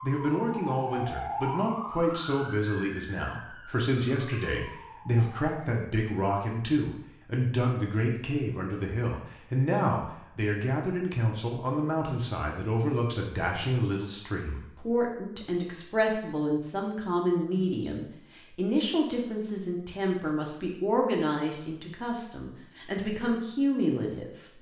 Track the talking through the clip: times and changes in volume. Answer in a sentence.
You can hear the talking from 0.0 to 24.5 s, at a steady volume.